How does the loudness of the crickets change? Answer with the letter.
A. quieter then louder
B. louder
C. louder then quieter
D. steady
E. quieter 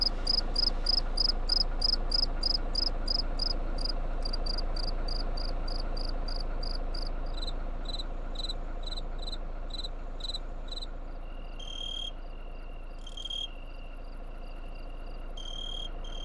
E.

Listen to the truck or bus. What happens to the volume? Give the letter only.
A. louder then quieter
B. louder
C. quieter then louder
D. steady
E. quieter
E.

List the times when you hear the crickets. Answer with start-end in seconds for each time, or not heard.
0.0-16.2.